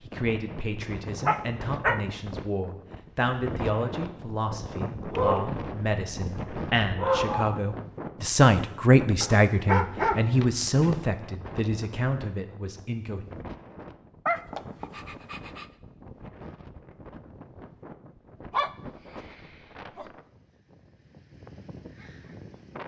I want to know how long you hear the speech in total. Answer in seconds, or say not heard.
13 s.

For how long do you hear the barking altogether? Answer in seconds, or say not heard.
8 s.